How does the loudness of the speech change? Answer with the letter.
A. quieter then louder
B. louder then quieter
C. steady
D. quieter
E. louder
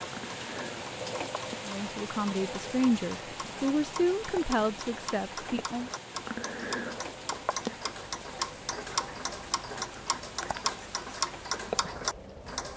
B.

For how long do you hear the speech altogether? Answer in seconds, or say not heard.
4 s.